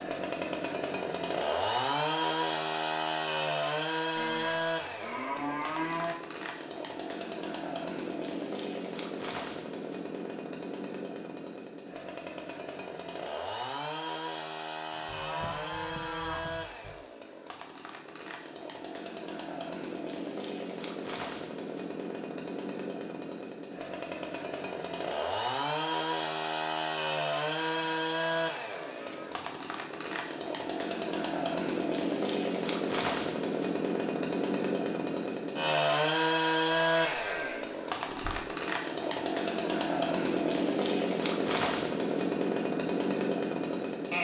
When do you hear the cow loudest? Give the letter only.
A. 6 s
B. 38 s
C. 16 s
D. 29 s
A.